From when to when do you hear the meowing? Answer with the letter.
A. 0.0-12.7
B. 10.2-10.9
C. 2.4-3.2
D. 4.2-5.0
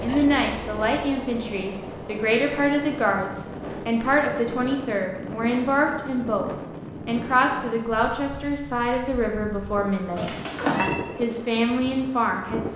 B.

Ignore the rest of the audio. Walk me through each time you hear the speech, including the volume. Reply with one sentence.
The speech can be heard from 0.0 to 12.7 s, at a steady volume.